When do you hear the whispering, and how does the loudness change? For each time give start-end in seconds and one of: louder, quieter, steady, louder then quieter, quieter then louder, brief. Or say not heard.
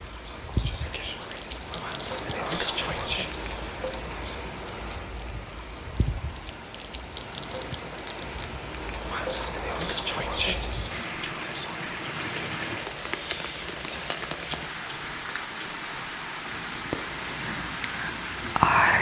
0.0-4.4 louder then quieter
9.1-14.1 quieter
16.4-18.9 brief.